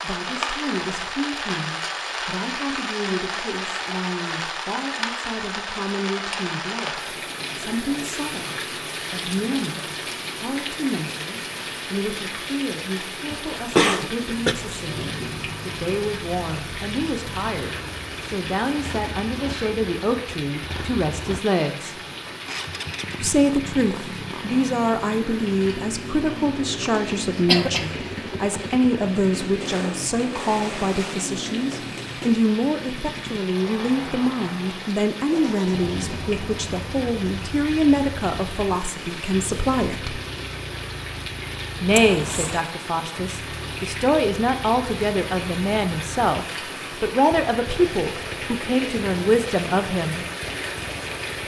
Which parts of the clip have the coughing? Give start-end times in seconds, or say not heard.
13.3-14.6, 26.2-27.9, 41.9-42.7.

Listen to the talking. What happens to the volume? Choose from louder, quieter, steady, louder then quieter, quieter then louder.
louder.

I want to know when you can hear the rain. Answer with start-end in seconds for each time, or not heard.
0.0-51.4.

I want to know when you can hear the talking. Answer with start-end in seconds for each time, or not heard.
0.0-21.9, 23.2-40.2, 41.8-50.2.